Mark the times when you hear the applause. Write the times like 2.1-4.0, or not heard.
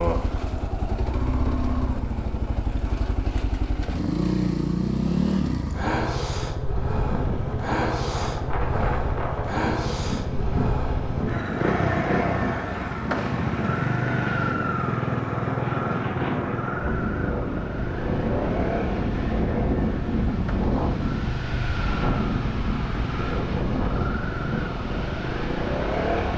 not heard.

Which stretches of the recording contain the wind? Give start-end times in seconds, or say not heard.
7.0-26.3.